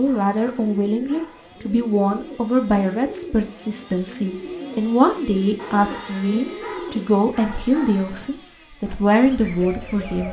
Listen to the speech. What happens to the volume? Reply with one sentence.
The loudness of the speech stays about the same.